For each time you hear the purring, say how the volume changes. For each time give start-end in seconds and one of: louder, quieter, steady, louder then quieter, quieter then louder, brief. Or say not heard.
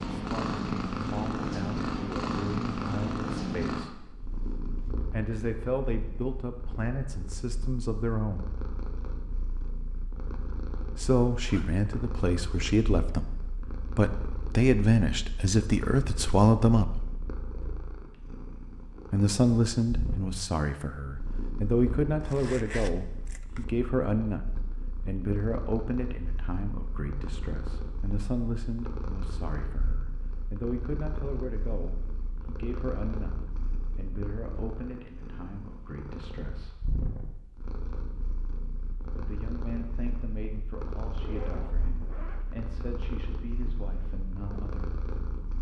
0.0-45.5 quieter.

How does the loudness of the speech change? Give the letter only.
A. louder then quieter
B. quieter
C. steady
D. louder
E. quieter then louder
A.